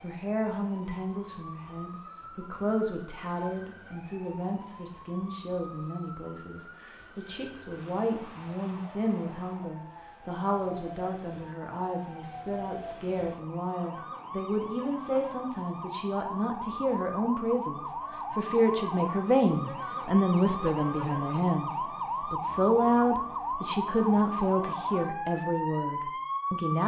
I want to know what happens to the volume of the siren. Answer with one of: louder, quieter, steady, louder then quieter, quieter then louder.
louder.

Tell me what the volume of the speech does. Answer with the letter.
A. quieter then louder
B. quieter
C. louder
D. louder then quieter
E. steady
C.